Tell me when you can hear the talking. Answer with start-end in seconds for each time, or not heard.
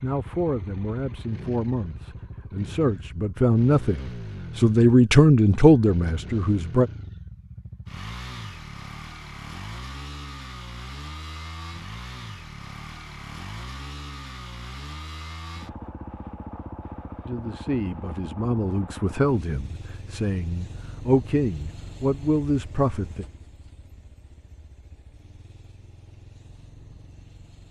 0.0-6.9, 17.2-23.2.